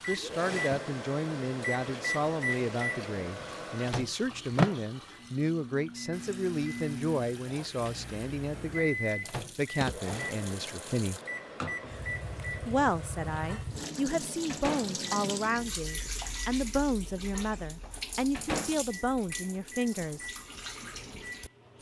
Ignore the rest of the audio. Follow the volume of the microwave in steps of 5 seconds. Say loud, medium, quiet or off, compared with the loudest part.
loud, medium, medium, medium, quiet.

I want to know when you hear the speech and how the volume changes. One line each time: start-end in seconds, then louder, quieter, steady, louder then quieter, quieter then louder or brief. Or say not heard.
0.1-11.2 steady
12.7-20.3 steady.